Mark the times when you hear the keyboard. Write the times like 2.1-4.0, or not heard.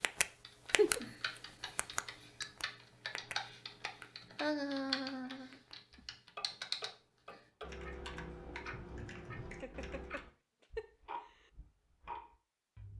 0.2-10.2.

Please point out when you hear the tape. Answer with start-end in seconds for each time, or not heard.
not heard.